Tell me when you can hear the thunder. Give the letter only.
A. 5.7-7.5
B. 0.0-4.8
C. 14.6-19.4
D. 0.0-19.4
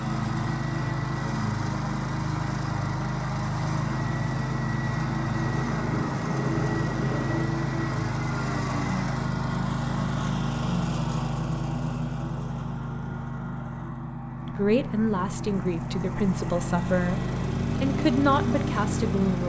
A.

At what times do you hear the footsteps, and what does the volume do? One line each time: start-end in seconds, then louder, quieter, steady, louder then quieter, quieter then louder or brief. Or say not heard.
not heard.